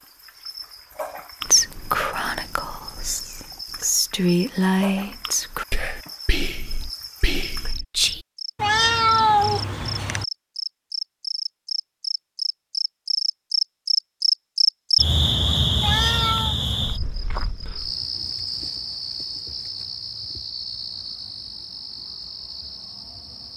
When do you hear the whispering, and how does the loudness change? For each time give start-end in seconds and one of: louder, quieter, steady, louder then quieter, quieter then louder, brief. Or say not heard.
1.4-8.2 louder then quieter.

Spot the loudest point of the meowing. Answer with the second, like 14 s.
9 s.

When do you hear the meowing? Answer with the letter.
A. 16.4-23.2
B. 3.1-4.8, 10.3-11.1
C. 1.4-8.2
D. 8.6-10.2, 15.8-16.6
D.